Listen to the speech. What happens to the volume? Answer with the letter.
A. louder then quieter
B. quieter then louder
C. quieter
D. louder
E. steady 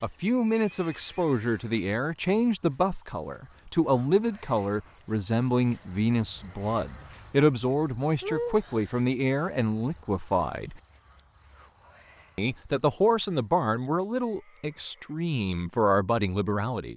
E.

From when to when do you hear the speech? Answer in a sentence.
You can hear the speech from 0.0 to 10.8 s and from 12.3 to 16.9 s.